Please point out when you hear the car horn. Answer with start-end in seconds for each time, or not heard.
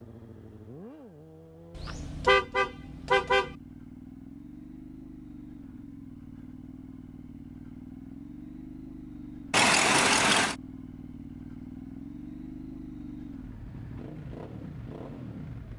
1.8-3.5, 9.5-10.6.